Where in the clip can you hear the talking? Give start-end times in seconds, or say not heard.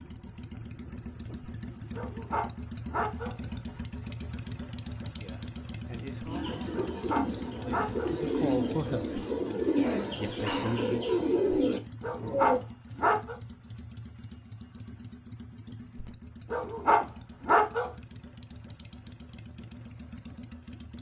5.2-9.2, 10.2-11.1.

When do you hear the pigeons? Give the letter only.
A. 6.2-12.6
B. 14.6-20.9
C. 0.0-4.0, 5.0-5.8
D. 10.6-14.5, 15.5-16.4
A.